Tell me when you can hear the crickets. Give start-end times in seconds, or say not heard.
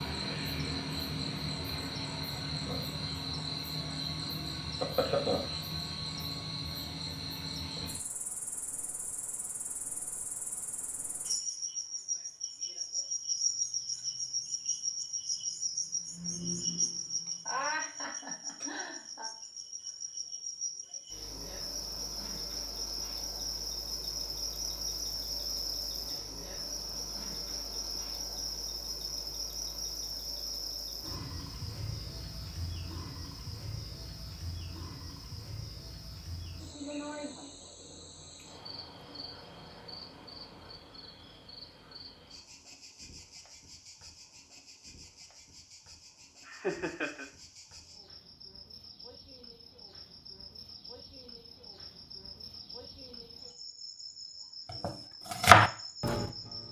0.0-56.6.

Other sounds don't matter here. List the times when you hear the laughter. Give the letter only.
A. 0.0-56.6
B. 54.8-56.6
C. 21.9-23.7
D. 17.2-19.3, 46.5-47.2
D.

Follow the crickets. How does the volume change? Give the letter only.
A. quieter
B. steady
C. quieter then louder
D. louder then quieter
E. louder
A.